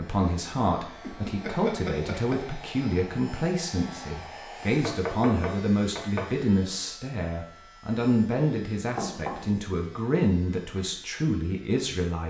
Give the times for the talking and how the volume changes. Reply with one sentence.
The talking can be heard from 0.0 to 12.2 s, at a steady volume.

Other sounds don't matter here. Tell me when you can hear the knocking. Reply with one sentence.
The knocking can be heard from 1.0 to 2.4 s, from 4.8 to 6.3 s and from 8.9 to 9.5 s.